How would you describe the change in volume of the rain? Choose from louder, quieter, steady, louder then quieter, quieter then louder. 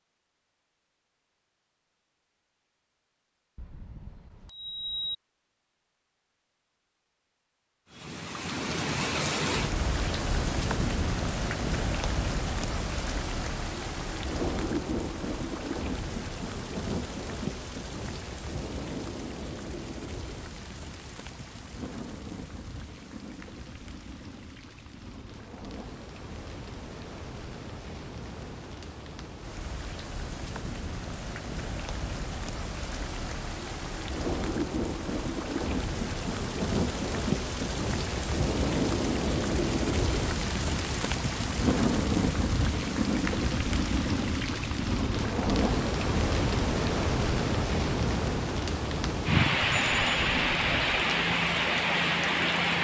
quieter then louder.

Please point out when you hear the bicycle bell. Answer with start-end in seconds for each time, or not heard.
3.5-5.2, 49.6-50.9.